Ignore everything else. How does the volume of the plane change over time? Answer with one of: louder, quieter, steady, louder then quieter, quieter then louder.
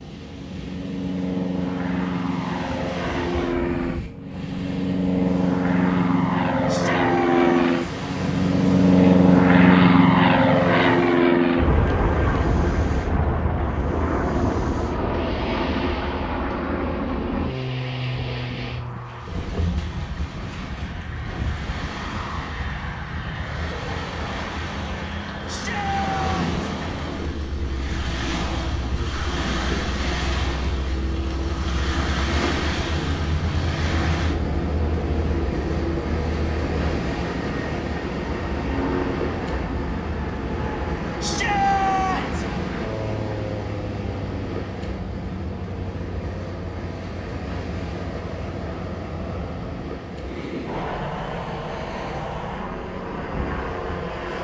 quieter.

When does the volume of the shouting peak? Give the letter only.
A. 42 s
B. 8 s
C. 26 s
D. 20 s
A.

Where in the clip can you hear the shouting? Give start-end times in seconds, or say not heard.
6.7-7.8, 25.4-26.4, 41.2-42.5.